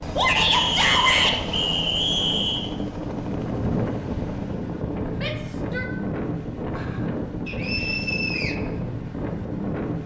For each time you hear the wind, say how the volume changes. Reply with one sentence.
The wind can be heard from 0.0 to 10.0 s, getting louder.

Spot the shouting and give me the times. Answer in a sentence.
You can hear the shouting from 0.1 to 1.4 s and from 5.2 to 5.9 s.